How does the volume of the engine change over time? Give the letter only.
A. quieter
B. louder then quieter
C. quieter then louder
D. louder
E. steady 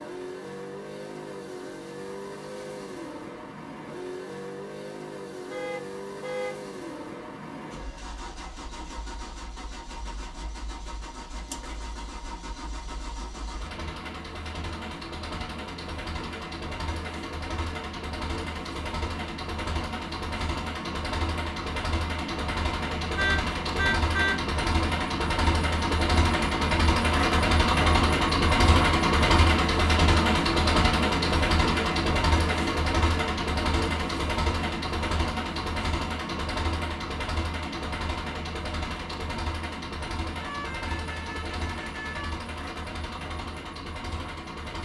B.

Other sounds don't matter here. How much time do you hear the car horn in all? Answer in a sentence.
You can hear the car horn for 4 seconds altogether.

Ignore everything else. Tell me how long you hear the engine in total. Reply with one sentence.
The engine can be heard for 45 seconds in total.